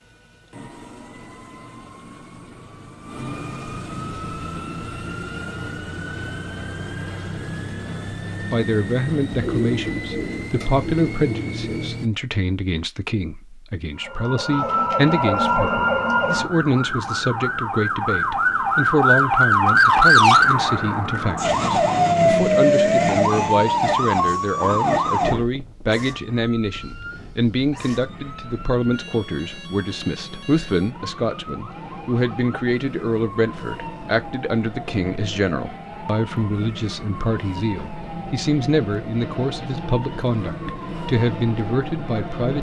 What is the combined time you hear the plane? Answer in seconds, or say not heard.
28 s.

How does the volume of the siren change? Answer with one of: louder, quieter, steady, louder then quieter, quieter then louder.
quieter.